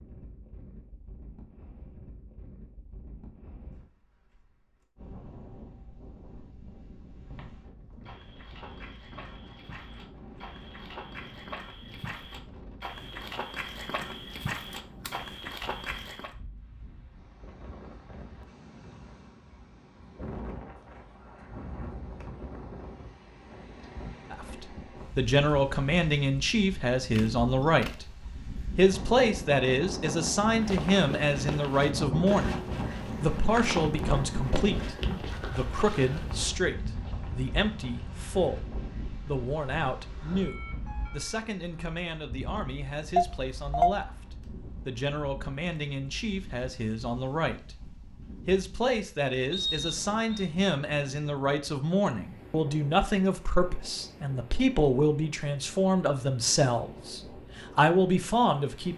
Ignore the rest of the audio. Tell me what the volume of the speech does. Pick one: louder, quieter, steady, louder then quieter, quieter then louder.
quieter then louder.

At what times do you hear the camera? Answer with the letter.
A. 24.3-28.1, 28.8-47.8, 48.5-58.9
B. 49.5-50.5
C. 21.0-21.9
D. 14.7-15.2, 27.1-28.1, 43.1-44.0
D.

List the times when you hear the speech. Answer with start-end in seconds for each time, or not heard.
24.3-28.1, 28.8-47.8, 48.5-58.9.